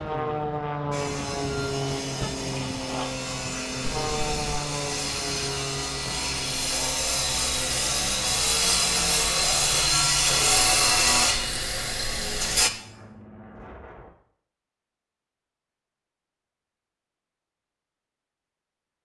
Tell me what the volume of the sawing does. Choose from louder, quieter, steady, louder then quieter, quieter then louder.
louder.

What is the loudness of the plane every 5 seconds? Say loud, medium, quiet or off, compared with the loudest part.
loud, medium, quiet, off.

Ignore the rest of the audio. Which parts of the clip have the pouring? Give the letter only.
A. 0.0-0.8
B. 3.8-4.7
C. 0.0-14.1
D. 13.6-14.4
B.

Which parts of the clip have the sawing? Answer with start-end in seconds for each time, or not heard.
0.9-12.7.